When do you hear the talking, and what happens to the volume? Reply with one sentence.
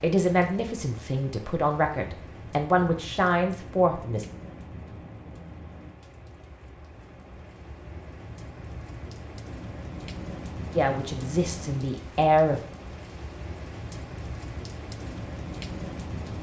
You can hear the talking from 0.0 to 4.2 s, getting louder; and briefly from 10.8 to 12.6 s.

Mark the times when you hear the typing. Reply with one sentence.
The typing can't be heard in this clip.